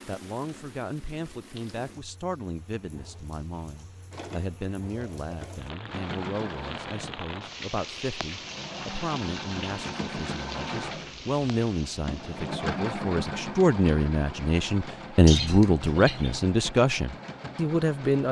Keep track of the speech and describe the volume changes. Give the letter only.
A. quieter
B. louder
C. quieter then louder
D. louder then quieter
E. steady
B.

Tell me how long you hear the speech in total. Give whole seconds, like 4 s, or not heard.
18 s.